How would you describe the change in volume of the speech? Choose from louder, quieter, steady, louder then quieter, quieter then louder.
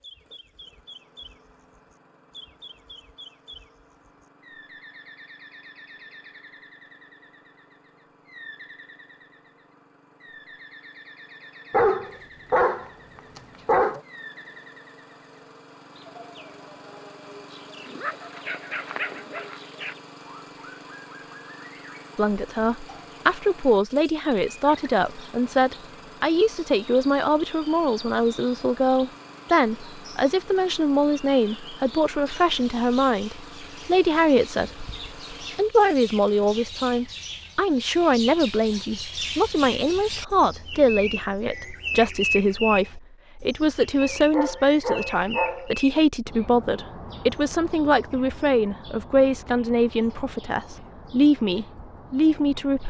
steady.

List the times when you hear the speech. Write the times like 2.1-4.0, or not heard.
22.1-34.9, 35.5-52.8.